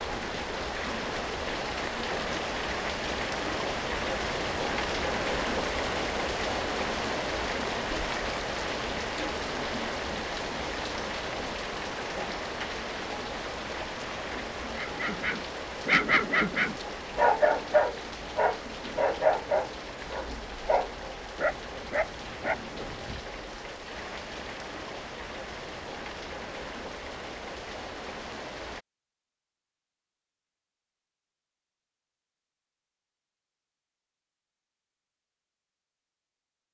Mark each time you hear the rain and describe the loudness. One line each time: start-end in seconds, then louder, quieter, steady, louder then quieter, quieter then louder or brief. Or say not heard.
0.0-28.9 quieter.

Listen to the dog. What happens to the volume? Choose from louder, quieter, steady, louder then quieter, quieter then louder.
quieter.